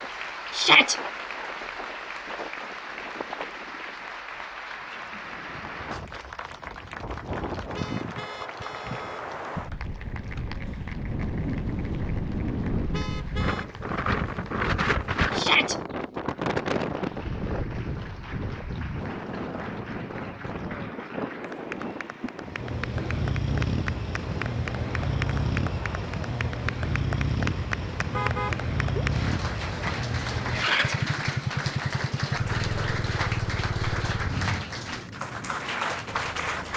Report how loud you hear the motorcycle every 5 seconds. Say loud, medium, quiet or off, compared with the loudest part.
off, off, off, off, loud, loud, loud, quiet.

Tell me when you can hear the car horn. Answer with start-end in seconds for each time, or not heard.
7.7-9.2, 12.9-13.7, 28.1-29.1.